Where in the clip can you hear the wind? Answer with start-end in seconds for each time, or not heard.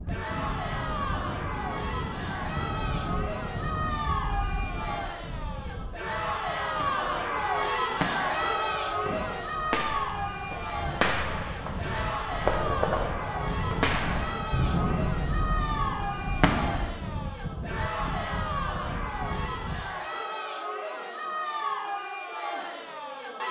0.0-19.9.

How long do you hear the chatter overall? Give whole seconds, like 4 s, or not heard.
23 s.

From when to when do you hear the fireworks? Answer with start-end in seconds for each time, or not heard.
6.8-17.0.